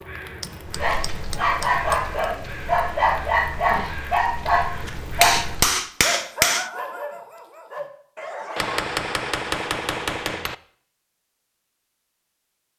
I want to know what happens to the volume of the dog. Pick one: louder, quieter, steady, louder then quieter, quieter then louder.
quieter.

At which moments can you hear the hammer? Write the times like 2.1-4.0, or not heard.
0.4-2.1, 5.2-6.7, 8.6-10.6.